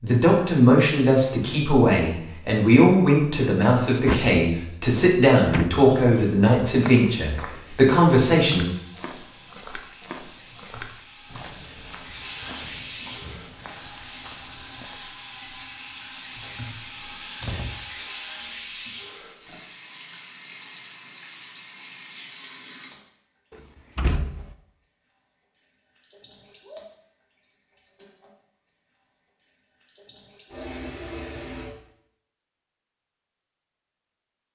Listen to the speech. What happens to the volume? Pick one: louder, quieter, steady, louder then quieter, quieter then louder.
steady.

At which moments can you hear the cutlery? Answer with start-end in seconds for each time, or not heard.
not heard.